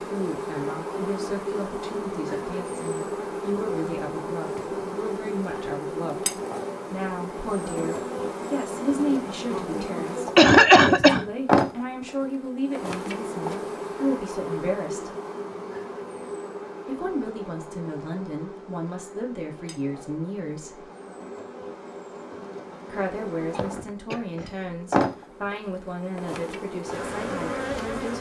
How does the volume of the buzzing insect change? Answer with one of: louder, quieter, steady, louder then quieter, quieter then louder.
quieter then louder.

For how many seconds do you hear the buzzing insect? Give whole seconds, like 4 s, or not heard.
28 s.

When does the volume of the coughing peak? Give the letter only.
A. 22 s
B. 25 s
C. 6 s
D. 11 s
D.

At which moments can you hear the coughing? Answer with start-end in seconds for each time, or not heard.
9.5-11.3, 23.5-24.6.